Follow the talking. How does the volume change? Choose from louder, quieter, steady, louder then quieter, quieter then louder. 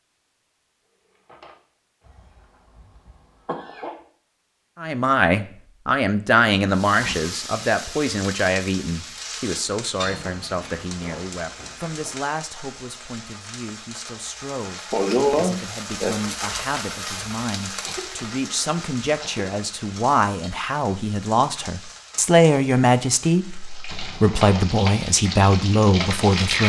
quieter then louder.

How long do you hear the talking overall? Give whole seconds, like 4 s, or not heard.
22 s.